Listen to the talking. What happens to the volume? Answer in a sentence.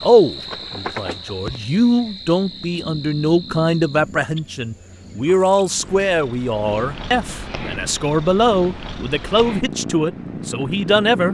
The loudness of the talking stays about the same.